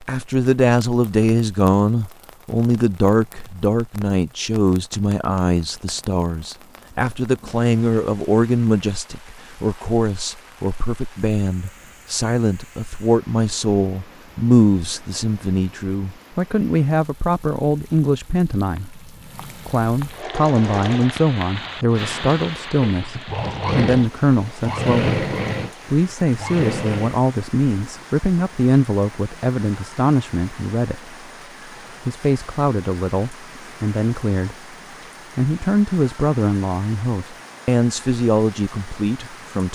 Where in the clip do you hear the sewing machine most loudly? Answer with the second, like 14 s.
25 s.